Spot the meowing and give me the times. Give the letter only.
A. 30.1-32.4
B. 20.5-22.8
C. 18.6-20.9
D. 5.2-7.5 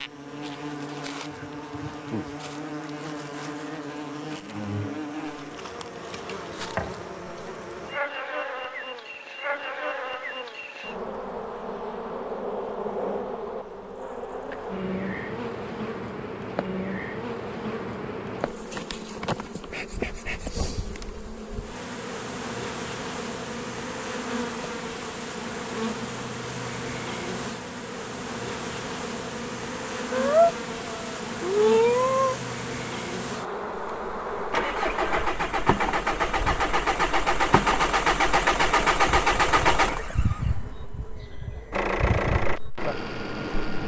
A.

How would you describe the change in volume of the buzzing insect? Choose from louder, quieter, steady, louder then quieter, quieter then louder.
steady.